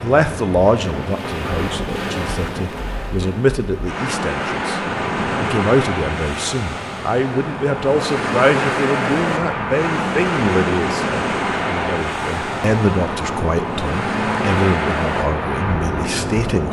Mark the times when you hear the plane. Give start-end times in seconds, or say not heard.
4.8-16.6.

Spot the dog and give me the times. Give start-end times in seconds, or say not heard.
not heard.